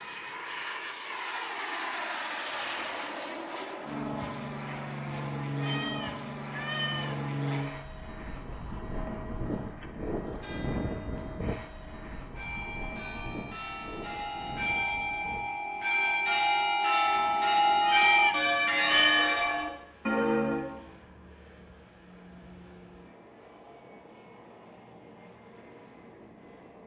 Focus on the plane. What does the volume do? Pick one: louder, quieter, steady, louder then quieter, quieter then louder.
quieter.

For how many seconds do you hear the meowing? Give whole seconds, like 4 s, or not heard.
3 s.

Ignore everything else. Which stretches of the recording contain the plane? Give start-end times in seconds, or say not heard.
0.0-26.8.